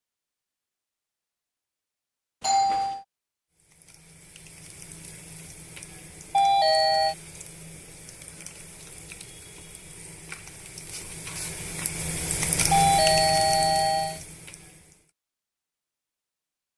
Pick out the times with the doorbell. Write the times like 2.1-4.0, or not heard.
2.4-3.0, 6.3-7.2, 12.7-14.2.